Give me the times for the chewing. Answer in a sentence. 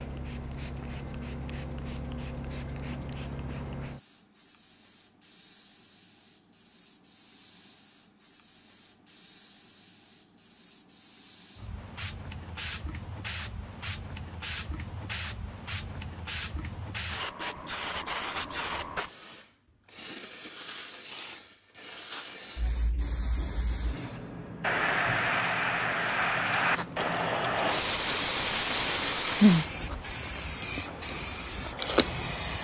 The chewing can be heard from 26.5 to 32.3 s.